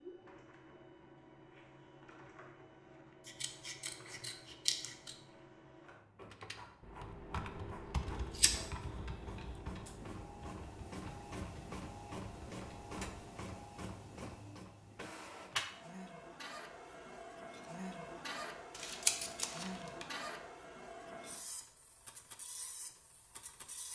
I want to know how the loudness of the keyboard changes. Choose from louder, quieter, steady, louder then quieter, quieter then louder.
quieter.